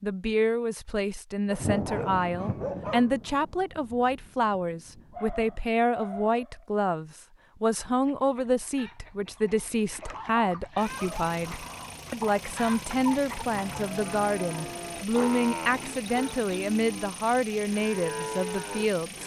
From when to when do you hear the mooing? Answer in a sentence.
The mooing can be heard from 13.4 to 19.2 s.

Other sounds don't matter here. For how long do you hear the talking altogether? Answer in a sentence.
You can hear the talking for 19 seconds altogether.